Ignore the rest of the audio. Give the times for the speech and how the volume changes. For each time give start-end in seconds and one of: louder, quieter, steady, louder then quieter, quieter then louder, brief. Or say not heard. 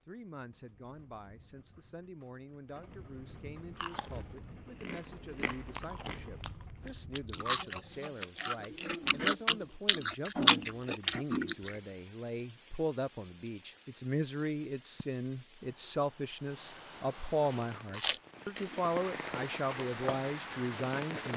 0.1-21.3 louder.